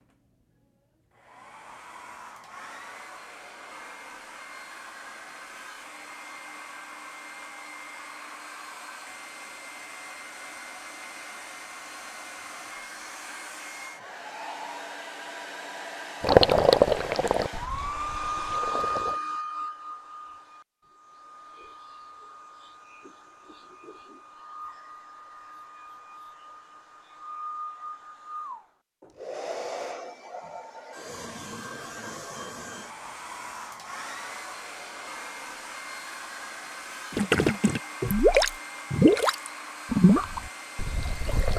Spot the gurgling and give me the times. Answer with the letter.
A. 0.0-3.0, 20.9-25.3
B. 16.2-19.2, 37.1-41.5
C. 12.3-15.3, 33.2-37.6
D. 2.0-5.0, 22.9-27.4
B.